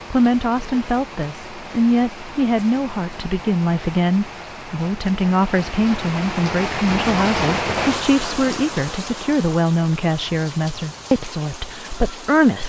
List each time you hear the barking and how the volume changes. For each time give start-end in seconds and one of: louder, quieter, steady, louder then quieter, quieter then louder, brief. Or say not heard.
not heard.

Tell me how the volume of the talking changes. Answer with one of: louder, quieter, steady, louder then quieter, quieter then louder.
steady.